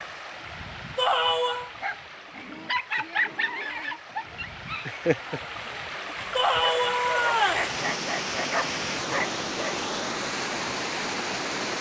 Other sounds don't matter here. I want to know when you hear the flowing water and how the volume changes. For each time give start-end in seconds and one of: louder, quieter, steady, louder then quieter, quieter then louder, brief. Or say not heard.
0.0-11.7 louder.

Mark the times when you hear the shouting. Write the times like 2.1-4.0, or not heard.
0.9-1.7, 6.3-7.7.